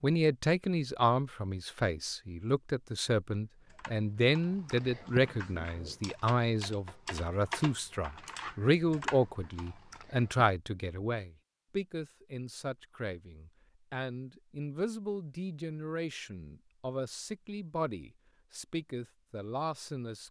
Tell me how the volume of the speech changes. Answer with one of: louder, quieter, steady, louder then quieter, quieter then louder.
quieter.